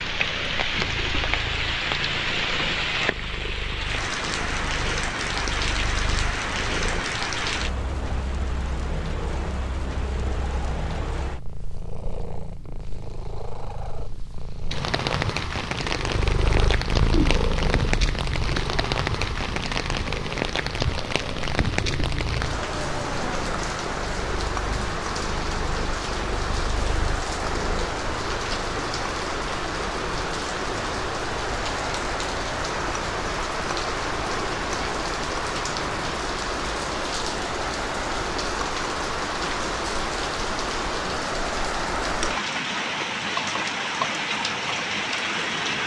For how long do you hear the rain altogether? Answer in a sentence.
You can hear the rain for 46 seconds altogether.